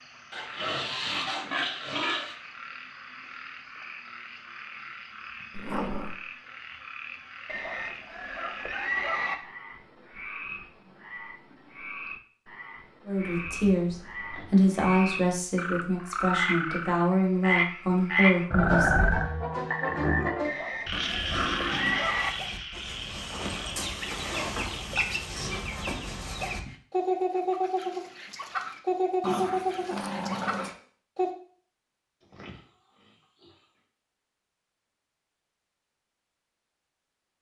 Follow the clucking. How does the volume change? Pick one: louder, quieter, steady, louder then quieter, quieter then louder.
louder.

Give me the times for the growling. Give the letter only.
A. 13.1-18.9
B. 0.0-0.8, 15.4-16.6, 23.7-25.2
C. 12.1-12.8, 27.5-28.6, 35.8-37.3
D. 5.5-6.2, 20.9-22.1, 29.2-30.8
D.